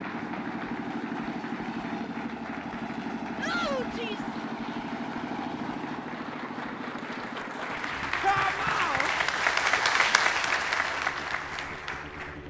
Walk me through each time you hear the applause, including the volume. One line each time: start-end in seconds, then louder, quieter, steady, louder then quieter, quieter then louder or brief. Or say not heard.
0.0-12.4 louder.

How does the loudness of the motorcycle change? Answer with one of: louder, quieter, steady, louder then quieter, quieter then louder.
quieter.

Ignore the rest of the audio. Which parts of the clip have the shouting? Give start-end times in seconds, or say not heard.
3.4-4.3, 8.2-9.1.